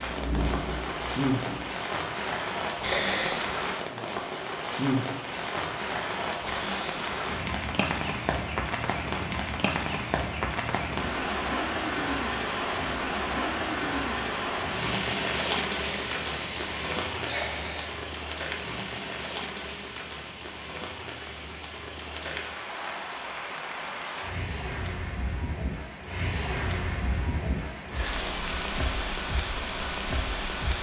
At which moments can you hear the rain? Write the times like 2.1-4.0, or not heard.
0.0-30.7.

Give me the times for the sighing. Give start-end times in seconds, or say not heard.
2.8-3.5, 15.8-18.0.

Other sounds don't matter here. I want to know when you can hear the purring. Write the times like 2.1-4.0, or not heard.
0.0-1.8.